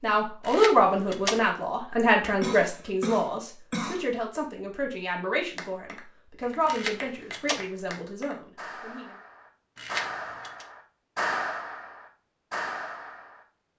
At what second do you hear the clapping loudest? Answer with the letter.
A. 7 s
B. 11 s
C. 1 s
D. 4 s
B.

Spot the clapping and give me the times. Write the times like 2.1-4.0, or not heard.
5.5-13.4.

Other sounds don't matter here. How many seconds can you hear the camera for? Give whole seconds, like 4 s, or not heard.
3 s.